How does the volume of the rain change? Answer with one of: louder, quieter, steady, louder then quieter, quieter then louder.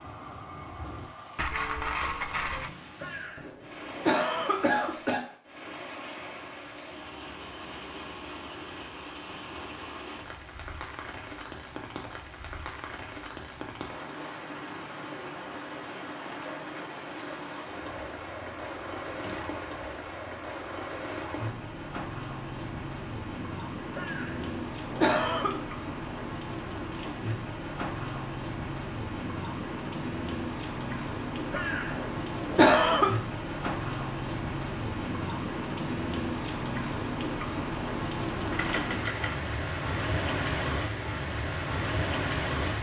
louder.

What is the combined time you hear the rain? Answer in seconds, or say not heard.
43 s.